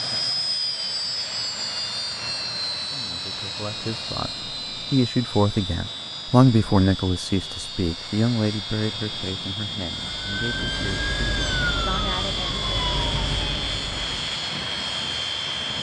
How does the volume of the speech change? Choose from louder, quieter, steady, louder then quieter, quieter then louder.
louder then quieter.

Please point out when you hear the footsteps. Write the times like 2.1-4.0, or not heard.
not heard.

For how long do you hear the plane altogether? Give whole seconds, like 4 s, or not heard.
16 s.